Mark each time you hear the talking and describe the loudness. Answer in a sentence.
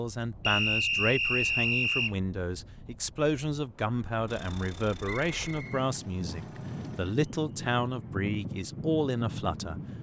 The talking can be heard from 0.0 to 9.8 s, at a steady volume.